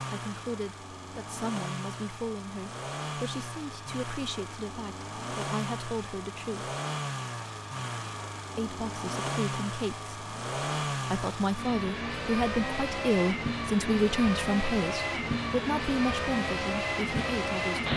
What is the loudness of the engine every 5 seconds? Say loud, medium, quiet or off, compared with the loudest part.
medium, medium, loud, loud.